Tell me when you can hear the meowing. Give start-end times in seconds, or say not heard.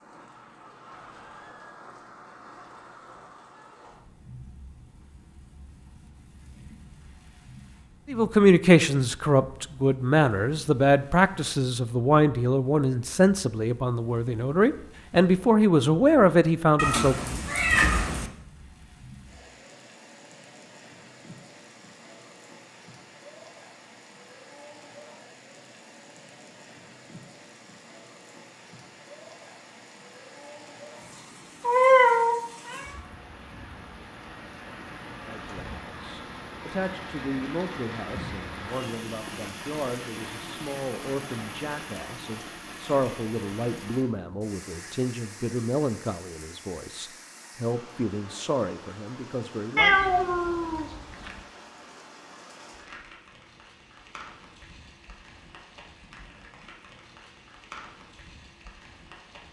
16.8-18.3, 31.6-32.9, 49.8-51.4.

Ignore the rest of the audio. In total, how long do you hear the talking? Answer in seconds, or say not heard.
24 s.